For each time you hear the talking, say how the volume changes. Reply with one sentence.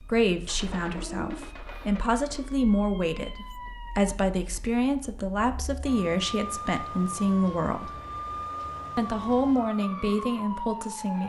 The talking can be heard from 0.1 to 8.0 s, getting louder; and briefly from 8.9 to 11.2 s.